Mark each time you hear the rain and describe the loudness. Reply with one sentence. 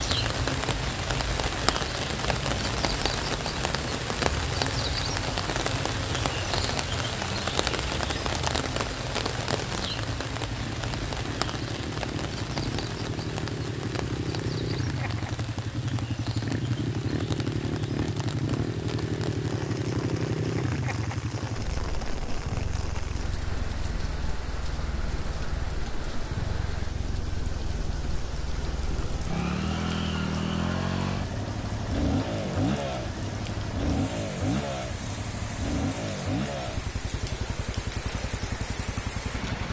The rain can be heard from 0.0 to 39.6 s, getting quieter.